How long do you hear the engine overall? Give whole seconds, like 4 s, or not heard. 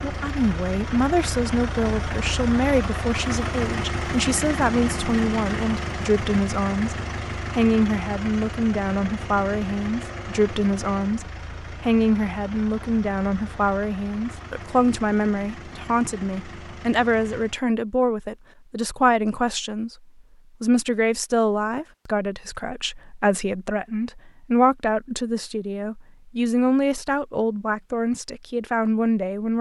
18 s.